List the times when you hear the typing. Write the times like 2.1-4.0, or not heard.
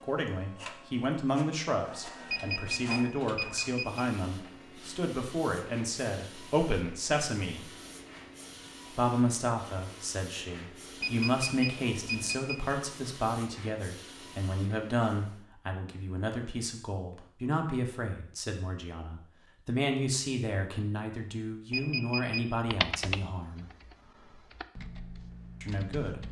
22.6-26.2.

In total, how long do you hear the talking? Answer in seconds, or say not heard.
23 s.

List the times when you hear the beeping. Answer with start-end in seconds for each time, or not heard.
2.3-4.0, 11.0-12.6, 21.7-22.4.